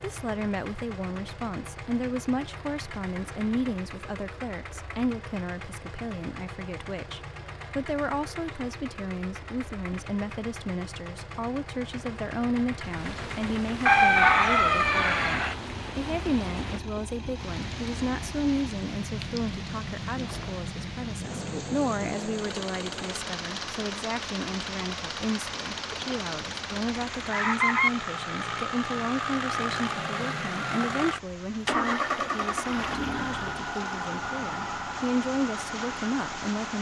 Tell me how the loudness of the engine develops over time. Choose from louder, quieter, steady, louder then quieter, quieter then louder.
louder.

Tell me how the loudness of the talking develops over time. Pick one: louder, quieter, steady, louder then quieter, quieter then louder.
steady.